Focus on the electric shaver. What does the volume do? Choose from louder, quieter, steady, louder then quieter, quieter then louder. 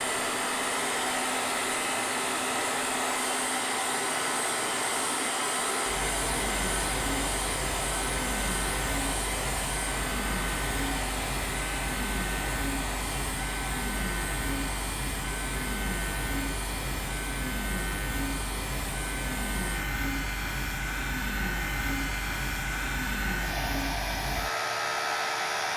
steady.